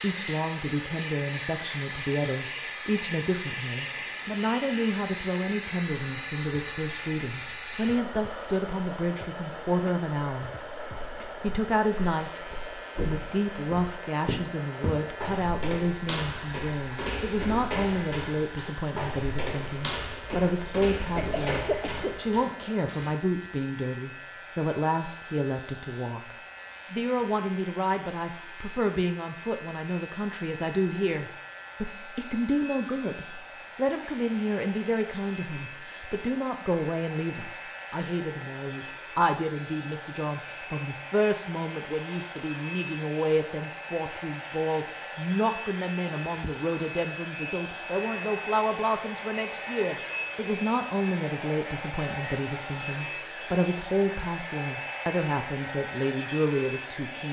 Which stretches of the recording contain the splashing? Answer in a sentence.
The splashing can't be heard in this clip.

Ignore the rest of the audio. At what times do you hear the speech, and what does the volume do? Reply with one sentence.
You can hear the speech from 0.0 to 10.5 s, at a steady volume; and from 11.4 to 57.2 s, at a steady volume.